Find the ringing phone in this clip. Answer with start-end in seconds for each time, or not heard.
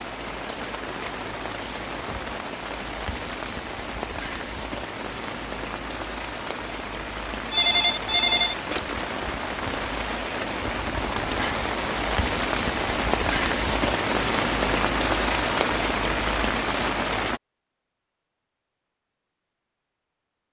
7.5-8.9.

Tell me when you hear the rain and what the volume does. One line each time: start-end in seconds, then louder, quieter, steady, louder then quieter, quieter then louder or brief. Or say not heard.
0.0-17.4 louder.